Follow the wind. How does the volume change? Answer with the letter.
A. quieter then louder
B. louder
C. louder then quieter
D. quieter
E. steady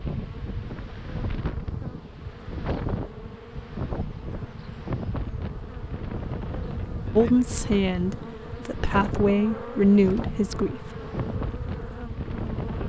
E.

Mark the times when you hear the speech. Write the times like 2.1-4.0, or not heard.
7.2-10.8.